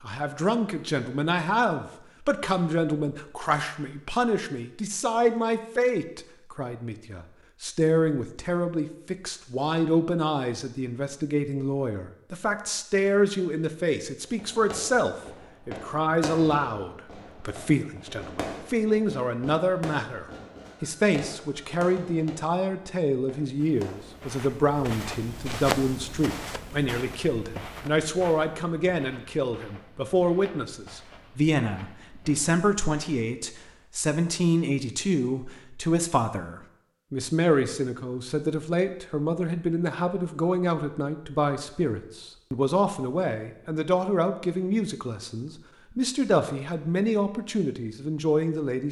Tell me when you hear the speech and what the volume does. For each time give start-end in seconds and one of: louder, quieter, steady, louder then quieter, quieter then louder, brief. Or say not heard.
0.0-48.8 steady.